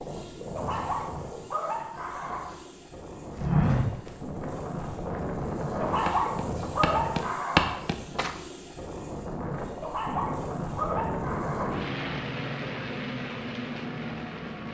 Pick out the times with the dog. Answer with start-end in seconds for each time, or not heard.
0.6-2.5, 5.8-7.8, 9.8-11.7.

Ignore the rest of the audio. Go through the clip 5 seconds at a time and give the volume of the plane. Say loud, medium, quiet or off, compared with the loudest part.
medium, loud, loud.